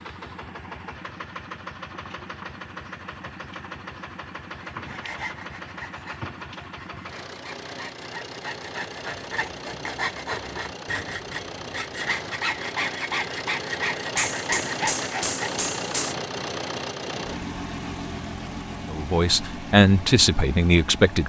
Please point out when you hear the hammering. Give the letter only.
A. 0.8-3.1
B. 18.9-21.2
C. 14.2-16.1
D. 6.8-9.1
C.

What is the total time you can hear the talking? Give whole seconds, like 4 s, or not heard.
2 s.